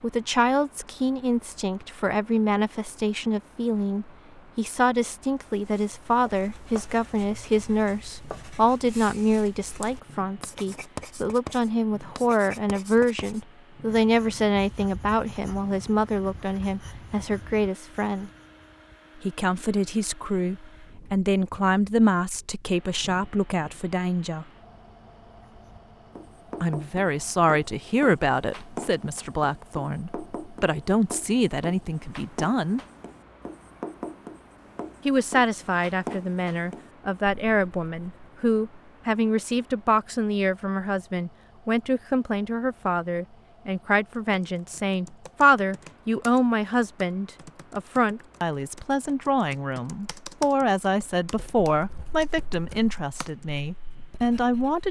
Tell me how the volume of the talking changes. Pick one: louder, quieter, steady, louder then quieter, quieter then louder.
steady.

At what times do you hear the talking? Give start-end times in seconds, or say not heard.
0.0-18.3, 19.1-24.4, 26.6-32.8, 35.0-54.8.